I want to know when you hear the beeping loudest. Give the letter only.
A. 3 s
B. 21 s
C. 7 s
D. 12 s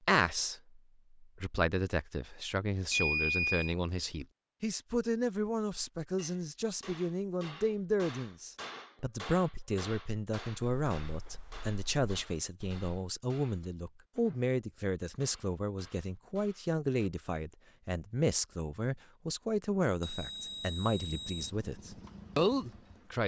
A.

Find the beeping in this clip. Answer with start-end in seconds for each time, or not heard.
2.9-3.8, 10.6-12.8, 20.0-21.5.